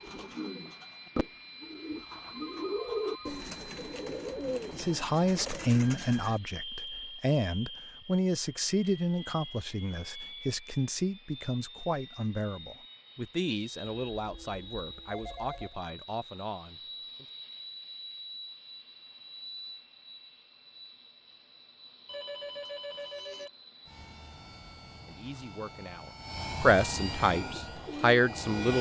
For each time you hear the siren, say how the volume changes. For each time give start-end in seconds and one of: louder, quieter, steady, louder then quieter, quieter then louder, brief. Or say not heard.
not heard.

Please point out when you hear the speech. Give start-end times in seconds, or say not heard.
4.7-17.2, 25.1-28.7.